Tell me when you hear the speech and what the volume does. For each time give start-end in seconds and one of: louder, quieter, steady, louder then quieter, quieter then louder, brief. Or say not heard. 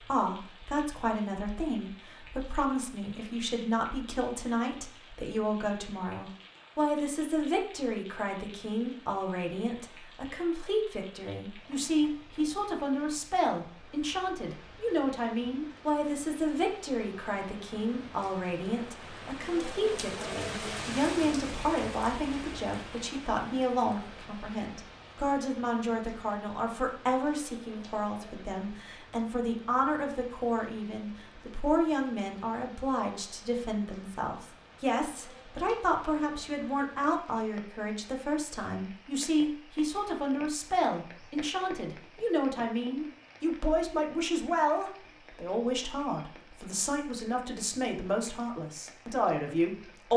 0.1-50.1 steady.